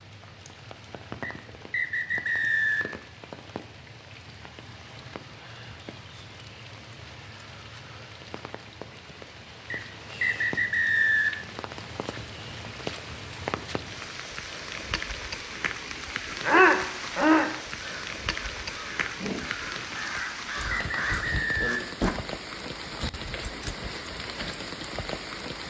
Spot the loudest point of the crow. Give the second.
17 s.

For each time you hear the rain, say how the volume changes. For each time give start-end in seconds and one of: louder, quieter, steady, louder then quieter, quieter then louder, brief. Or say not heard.
0.0-25.6 louder.